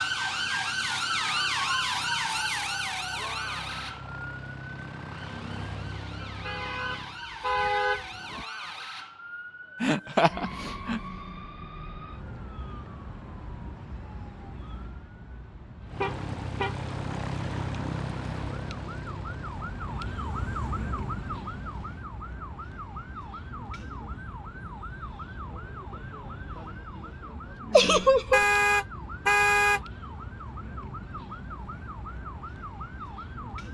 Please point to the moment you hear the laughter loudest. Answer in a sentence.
The volume of the laughter peaks at 28 seconds.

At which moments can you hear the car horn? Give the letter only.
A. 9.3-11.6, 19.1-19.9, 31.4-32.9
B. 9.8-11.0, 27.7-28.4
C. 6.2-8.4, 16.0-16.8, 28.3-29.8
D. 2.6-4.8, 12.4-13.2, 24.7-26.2
C.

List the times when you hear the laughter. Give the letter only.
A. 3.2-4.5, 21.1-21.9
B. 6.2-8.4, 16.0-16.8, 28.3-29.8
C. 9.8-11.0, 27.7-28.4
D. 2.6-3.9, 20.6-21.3
C.